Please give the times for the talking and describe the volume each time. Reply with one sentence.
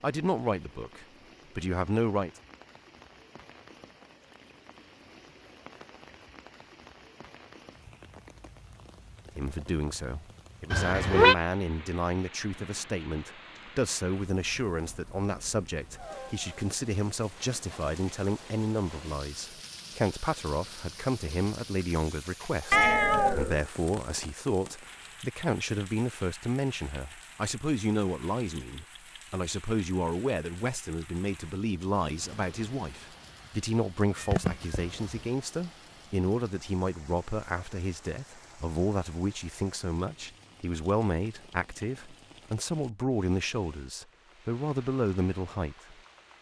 The talking can be heard briefly from 0.0 to 2.3 s; and from 9.2 to 46.3 s, at a steady volume.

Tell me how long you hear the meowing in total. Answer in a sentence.
You can hear the meowing for 3 seconds altogether.